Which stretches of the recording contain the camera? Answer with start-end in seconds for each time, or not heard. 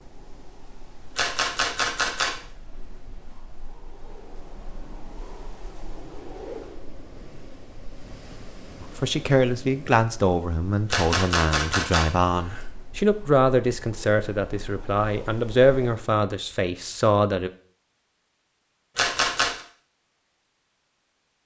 1.1-2.4, 10.9-12.7, 18.9-19.6.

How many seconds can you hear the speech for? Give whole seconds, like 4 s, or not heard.
9 s.